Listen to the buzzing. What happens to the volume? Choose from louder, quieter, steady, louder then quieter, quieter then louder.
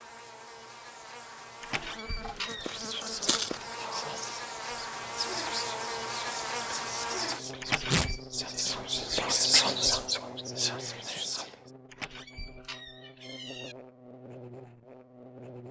louder then quieter.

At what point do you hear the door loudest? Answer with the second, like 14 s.
8 s.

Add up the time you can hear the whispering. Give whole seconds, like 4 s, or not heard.
9 s.